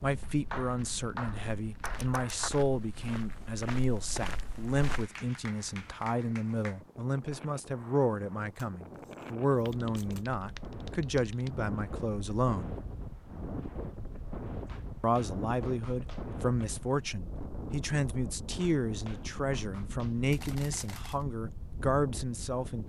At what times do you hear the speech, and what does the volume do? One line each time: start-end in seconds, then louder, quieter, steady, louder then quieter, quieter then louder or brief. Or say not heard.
0.0-12.8 steady
15.0-22.8 steady.